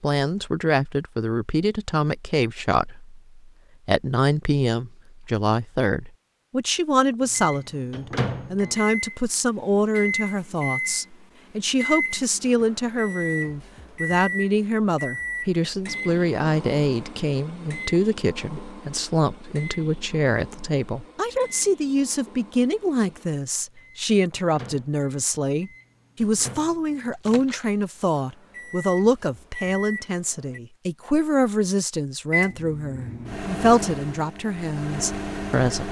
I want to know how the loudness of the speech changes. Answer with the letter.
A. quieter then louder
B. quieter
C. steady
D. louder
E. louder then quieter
C.